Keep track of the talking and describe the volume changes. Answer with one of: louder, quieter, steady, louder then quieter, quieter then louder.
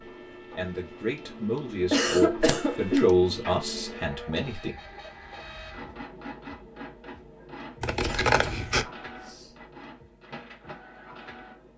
louder then quieter.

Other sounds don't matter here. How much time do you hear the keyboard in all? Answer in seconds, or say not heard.
not heard.